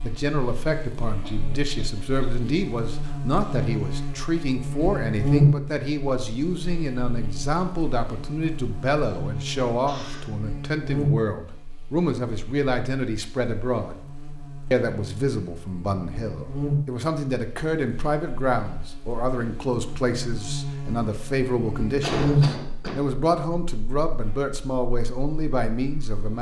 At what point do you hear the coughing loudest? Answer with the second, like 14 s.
22 s.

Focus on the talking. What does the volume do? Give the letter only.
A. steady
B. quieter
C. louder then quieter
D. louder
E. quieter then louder
A.